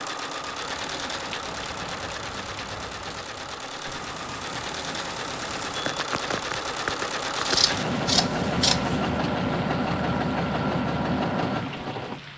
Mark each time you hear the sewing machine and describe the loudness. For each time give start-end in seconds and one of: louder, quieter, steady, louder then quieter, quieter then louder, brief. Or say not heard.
0.0-12.3 louder.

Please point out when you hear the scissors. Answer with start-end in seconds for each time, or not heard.
7.4-9.0.